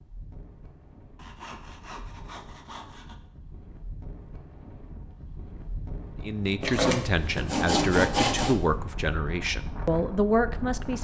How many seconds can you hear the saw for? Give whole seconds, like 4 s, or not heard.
4 s.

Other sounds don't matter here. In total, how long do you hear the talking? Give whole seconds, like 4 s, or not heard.
5 s.